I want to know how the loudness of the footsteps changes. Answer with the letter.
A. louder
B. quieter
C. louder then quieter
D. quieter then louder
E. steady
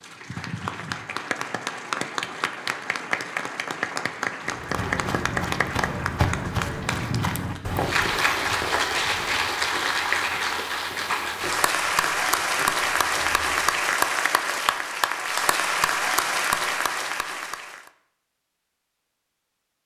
B.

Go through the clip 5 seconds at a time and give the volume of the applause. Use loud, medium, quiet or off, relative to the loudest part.
medium, loud, loud, loud.